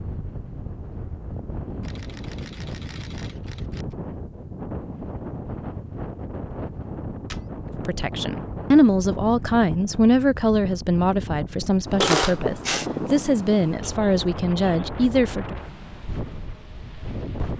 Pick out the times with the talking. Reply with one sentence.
The talking can be heard from 7.8 to 15.6 s.